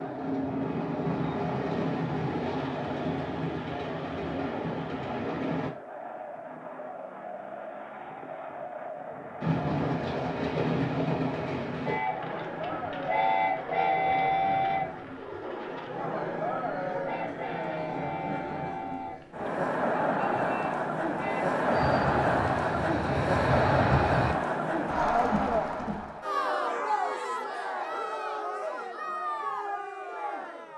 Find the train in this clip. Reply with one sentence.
The train can be heard from 0.0 to 5.7 s and from 9.4 to 24.4 s.